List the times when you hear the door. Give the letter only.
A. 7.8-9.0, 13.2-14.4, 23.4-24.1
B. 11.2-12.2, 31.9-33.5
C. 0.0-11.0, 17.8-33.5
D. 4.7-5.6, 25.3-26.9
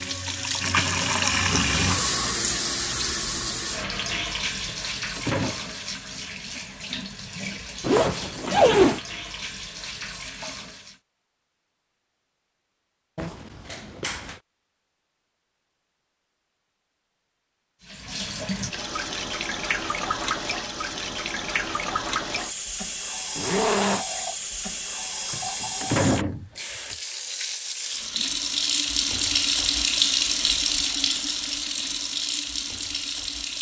D.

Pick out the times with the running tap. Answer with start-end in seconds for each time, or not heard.
0.0-11.0, 17.8-33.5.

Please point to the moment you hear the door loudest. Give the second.
26 s.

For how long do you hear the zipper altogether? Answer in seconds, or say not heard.
3 s.